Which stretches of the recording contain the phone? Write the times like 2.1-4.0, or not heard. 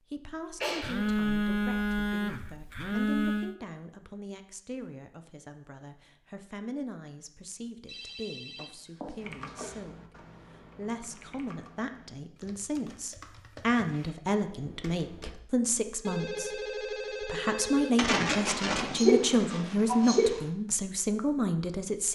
0.8-3.5, 7.8-9.8, 16.1-18.0.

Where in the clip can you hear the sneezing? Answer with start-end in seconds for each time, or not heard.
0.6-1.1, 17.9-20.4.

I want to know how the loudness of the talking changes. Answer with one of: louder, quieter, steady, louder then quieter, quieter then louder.
louder.